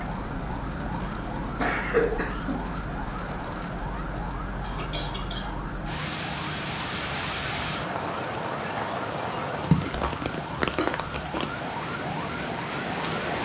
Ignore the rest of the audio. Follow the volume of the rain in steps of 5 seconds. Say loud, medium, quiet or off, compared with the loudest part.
medium, loud, loud.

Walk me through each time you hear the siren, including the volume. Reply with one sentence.
You can hear the siren from 0.0 to 13.3 s, at a steady volume.